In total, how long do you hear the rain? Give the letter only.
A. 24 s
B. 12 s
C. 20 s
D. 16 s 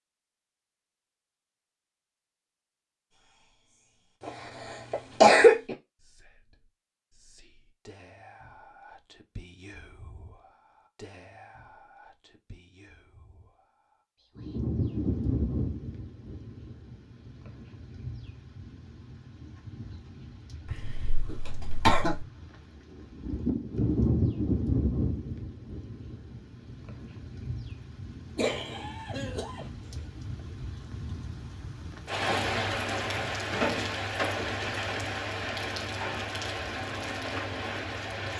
A.